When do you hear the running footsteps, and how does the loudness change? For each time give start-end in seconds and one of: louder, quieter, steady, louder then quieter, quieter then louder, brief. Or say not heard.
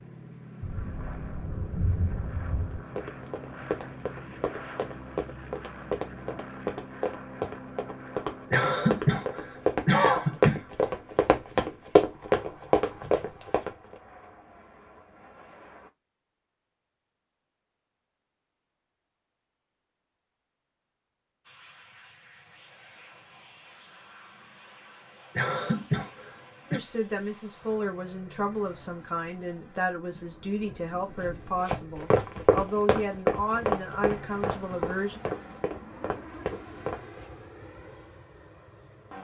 2.6-13.7 louder
31.6-37.4 quieter.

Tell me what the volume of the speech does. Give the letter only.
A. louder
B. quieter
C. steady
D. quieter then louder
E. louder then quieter
C.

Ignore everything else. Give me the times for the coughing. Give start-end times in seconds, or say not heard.
8.5-10.6, 25.4-26.8.